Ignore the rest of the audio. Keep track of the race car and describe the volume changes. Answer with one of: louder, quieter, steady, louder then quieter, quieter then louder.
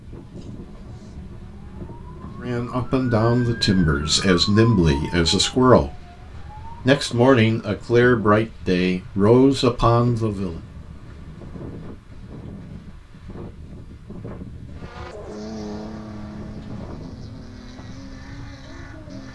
quieter.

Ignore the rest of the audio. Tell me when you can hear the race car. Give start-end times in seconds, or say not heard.
14.7-19.3.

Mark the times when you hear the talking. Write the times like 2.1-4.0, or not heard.
2.4-6.0, 6.8-10.6.